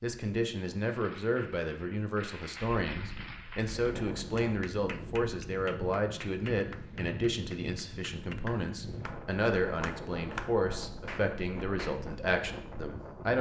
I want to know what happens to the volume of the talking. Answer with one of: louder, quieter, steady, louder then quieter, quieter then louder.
steady.